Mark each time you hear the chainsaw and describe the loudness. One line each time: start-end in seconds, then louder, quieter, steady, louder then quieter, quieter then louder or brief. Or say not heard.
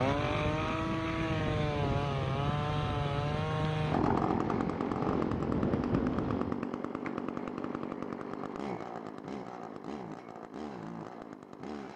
0.0-11.9 quieter.